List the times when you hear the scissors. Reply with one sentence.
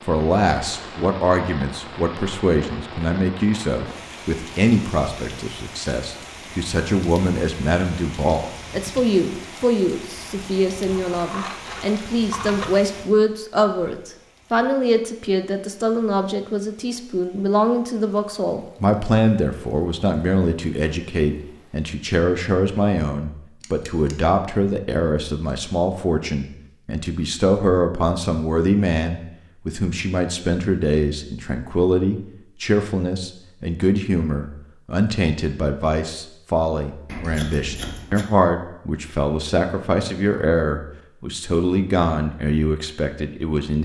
You can hear the scissors from 10.8 to 12.7 s, from 23.6 to 24.1 s and from 37.0 to 38.2 s.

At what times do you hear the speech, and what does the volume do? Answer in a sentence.
The speech can be heard from 0.1 to 43.7 s, at a steady volume.